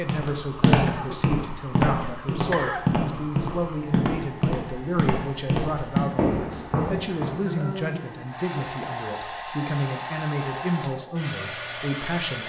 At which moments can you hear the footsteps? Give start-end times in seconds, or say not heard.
0.0-7.4.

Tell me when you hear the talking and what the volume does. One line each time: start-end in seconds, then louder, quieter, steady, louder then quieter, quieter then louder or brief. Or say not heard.
0.0-12.4 steady.